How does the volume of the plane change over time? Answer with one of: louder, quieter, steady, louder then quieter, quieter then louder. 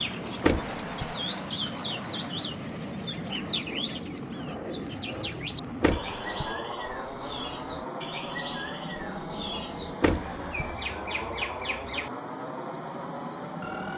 steady.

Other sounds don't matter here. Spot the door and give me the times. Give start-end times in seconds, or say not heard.
0.4-1.1, 5.8-6.5, 10.0-10.8.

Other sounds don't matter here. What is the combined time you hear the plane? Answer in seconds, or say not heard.
14 s.